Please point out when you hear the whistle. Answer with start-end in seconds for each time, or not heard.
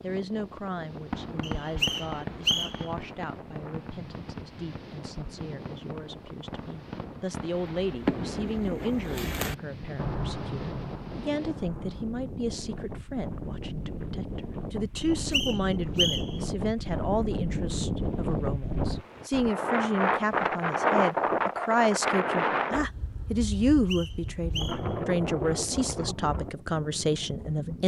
1.4-2.9, 14.9-16.4, 23.5-24.9.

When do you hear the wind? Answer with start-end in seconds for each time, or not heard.
0.0-27.8.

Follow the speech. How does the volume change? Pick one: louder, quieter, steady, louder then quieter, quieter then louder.
louder.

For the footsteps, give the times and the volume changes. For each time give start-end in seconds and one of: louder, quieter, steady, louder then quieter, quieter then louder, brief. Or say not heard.
not heard.